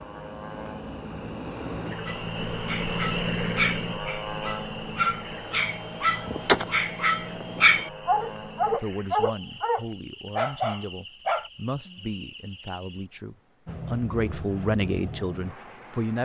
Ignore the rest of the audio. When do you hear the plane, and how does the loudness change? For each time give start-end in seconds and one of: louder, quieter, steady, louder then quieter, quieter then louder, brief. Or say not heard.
0.0-8.8 louder then quieter
13.7-16.2 brief.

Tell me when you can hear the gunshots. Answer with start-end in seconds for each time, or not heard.
6.2-7.8.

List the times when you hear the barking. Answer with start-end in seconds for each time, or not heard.
2.0-11.5.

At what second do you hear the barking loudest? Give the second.
8 s.